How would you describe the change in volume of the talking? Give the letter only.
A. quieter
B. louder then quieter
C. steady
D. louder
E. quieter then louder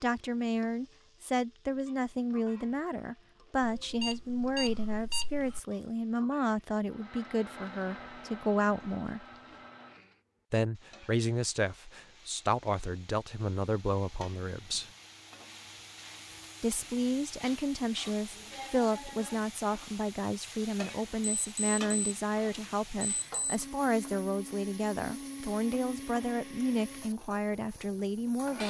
C.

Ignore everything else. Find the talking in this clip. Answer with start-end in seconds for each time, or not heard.
0.0-9.2, 10.5-14.9, 16.6-28.6.